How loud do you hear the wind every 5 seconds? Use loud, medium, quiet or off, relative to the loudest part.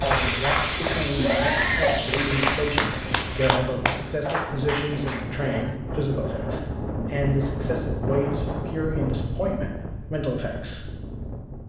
medium, loud, medium.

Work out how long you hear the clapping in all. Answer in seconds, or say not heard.
6 s.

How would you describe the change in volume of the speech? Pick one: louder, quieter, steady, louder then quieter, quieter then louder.
steady.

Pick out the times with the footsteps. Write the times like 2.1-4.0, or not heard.
0.0-3.5.